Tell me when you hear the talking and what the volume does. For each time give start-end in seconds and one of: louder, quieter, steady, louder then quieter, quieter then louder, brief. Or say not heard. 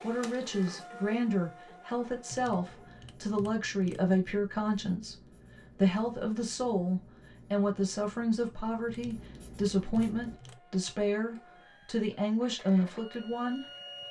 0.0-13.7 steady.